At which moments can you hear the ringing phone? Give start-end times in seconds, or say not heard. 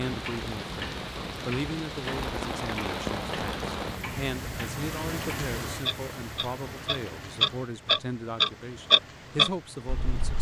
not heard.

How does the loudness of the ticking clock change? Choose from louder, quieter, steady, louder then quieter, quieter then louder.
louder.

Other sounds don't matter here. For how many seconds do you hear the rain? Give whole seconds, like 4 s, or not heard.
10 s.